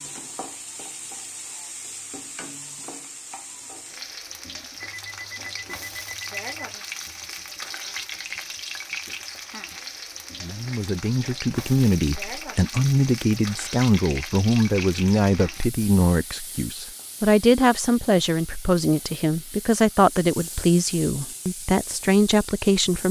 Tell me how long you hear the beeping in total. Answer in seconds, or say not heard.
2 s.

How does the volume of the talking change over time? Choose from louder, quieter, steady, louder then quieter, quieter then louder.
steady.